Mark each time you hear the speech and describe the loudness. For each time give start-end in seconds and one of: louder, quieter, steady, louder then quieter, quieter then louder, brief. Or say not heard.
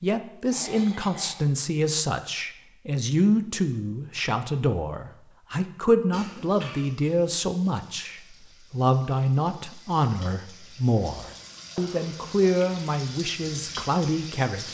0.0-14.7 steady.